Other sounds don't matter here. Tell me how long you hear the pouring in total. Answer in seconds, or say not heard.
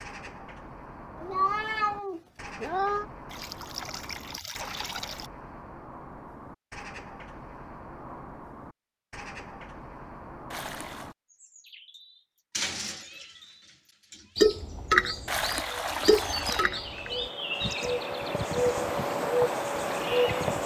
4 s.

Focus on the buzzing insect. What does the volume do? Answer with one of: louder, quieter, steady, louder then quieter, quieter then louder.
louder.